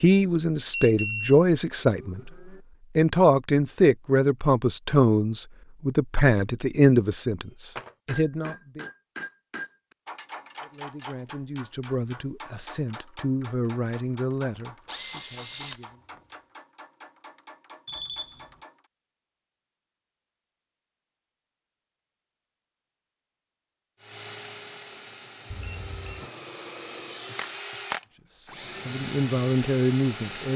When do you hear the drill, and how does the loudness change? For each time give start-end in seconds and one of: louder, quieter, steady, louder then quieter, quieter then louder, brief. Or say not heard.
14.6-15.8 brief
24.0-30.5 louder.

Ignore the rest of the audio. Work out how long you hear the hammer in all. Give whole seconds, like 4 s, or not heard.
11 s.